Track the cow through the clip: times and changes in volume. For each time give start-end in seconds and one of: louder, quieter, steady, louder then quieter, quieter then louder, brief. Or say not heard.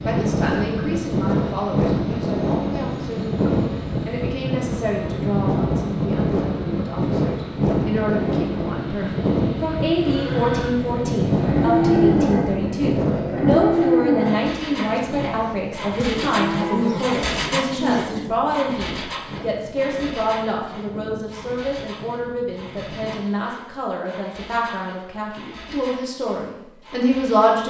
9.9-17.1 louder then quieter.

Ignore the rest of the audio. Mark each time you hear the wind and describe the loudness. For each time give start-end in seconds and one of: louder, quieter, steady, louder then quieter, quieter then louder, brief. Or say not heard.
0.0-23.2 quieter.